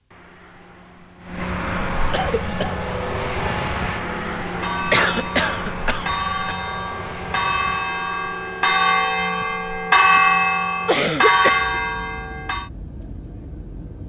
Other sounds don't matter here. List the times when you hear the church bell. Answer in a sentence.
The church bell can be heard from 2.4 to 12.7 s.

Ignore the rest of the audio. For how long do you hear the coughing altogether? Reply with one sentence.
The coughing can be heard for 3 seconds in total.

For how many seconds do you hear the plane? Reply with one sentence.
You can hear the plane for 14 seconds altogether.